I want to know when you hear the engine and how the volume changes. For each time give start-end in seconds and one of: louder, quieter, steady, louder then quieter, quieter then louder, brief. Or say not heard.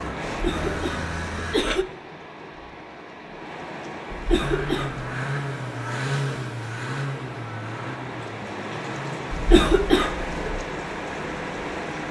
0.0-1.6 brief
4.4-12.0 quieter.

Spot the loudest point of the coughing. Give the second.
10 s.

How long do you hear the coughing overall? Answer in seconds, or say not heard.
4 s.